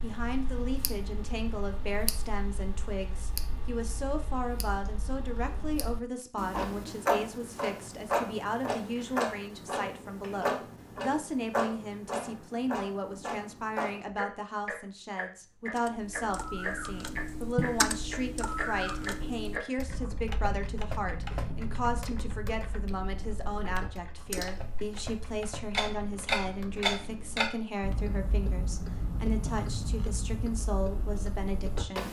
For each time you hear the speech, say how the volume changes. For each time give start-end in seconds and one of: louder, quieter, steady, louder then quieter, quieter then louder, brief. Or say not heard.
0.0-32.0 steady.